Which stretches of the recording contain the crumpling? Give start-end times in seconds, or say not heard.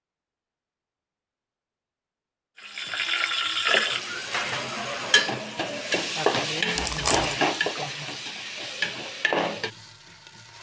6.8-7.4.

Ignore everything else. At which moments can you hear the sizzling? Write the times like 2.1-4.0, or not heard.
2.6-10.5.